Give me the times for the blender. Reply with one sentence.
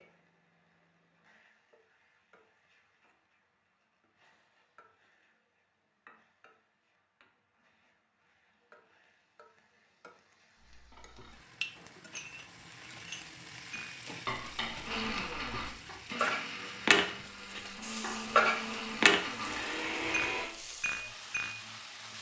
You can hear the blender from 14.8 to 20.5 s.